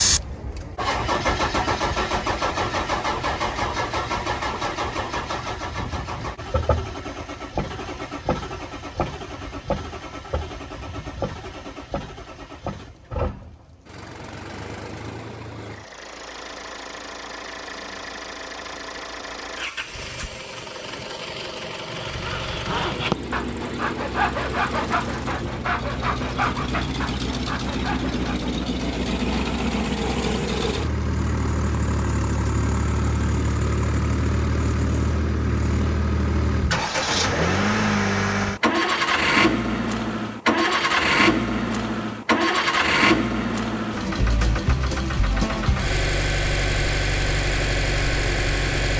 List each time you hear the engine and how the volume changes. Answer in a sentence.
You can hear the engine from 0.0 to 48.9 s, getting quieter then louder.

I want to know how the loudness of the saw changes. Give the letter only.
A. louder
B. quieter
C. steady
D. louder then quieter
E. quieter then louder
B.